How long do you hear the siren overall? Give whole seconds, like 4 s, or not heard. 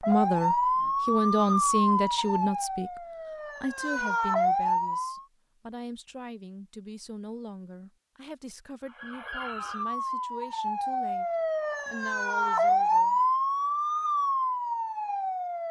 12 s.